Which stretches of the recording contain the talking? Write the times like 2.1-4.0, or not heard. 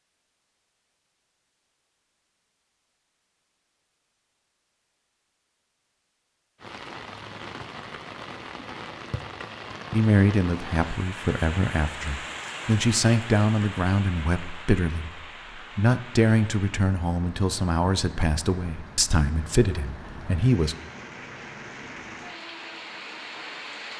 9.9-20.8.